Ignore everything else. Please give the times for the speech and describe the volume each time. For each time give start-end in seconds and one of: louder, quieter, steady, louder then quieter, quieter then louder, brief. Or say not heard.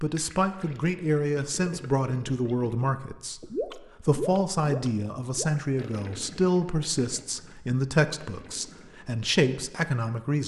0.0-10.4 steady.